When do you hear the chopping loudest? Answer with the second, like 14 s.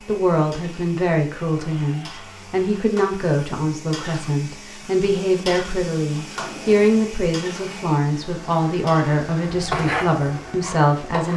10 s.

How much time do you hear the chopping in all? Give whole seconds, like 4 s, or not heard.
2 s.